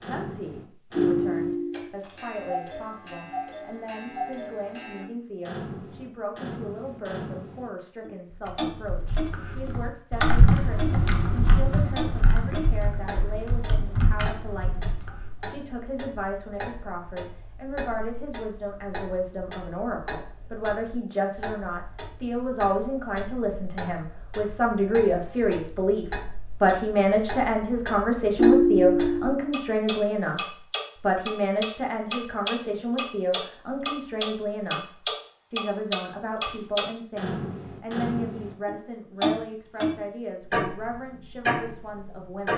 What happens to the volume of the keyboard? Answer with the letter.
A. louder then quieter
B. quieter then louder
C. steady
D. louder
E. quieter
A.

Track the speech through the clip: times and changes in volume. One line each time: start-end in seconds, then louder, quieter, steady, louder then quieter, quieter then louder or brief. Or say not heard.
0.1-30.4 louder
31.0-42.5 quieter.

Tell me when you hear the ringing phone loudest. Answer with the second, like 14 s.
29 s.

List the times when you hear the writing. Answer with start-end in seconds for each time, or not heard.
not heard.